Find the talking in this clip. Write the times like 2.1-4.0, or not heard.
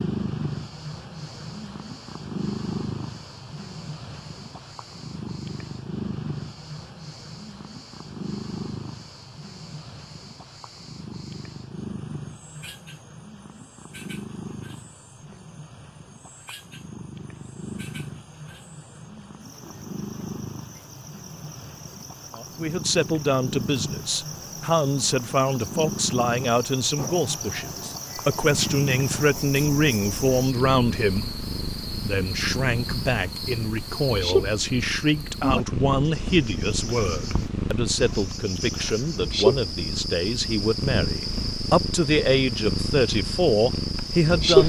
22.4-31.2, 32.0-44.6.